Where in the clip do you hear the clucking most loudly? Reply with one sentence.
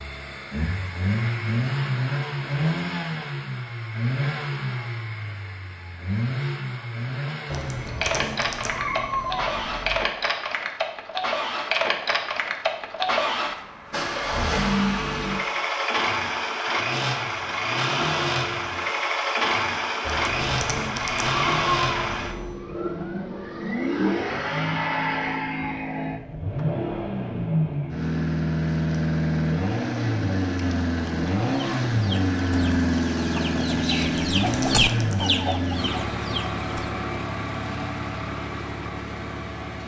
The loudest moment of the clucking is at 35 seconds.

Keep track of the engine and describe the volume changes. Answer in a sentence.
The volume of the engine stays about the same.